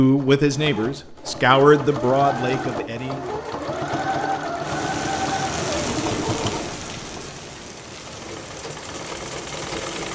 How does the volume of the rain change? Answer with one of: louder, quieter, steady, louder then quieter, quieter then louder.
quieter.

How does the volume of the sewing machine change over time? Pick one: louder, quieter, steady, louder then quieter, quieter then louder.
louder then quieter.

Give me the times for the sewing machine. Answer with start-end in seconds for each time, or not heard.
0.0-10.1.